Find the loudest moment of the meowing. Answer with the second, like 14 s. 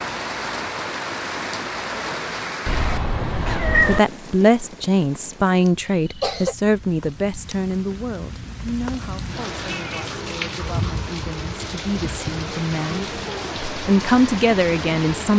4 s.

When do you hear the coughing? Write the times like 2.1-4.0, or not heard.
5.8-6.5.